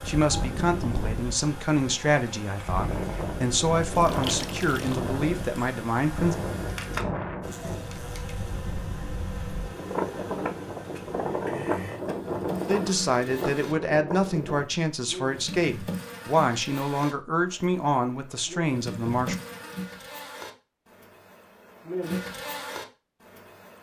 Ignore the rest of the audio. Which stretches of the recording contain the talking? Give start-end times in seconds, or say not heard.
0.0-6.3, 12.7-19.4.